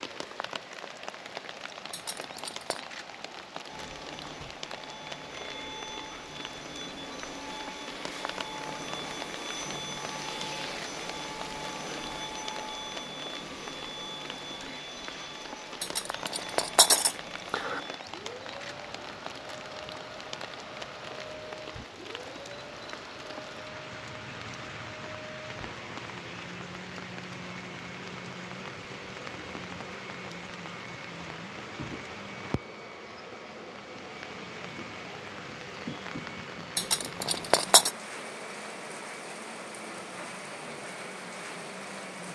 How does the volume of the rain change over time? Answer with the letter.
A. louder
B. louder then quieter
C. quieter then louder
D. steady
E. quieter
D.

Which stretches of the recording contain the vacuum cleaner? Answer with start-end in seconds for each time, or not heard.
3.6-42.2.